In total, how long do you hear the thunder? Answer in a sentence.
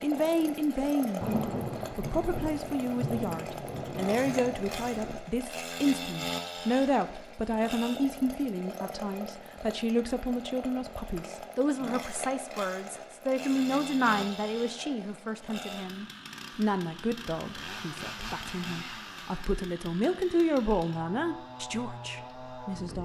The thunder can be heard for 4 seconds in total.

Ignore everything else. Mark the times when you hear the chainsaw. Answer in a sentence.
The chainsaw can be heard from 0.0 to 23.0 s.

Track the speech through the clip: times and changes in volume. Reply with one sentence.
The speech can be heard from 0.0 to 23.0 s, at a steady volume.